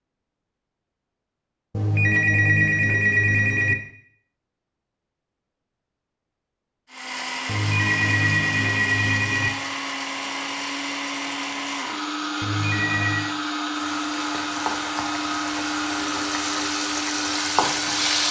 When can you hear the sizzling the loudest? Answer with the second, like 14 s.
18 s.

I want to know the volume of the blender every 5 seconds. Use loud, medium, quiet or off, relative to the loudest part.
off, loud, loud, loud.